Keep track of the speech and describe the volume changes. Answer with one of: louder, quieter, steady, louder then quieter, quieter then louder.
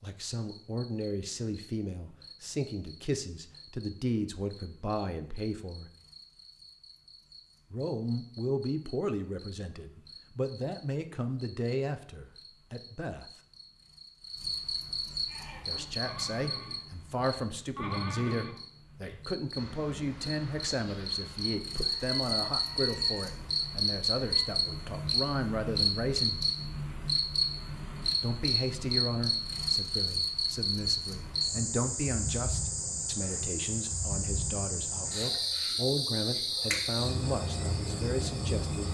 steady.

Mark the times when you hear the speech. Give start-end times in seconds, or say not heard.
0.0-5.9, 7.7-13.3, 15.7-26.4, 28.2-38.8.